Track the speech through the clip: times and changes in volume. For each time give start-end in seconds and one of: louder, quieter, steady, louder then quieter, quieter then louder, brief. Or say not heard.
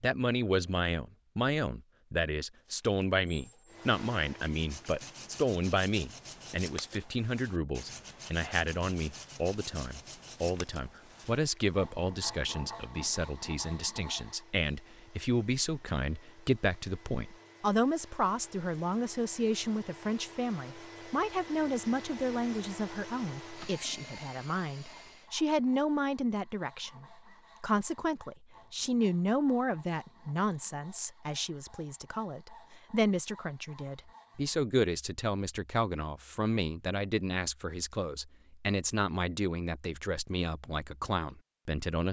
0.0-42.0 steady.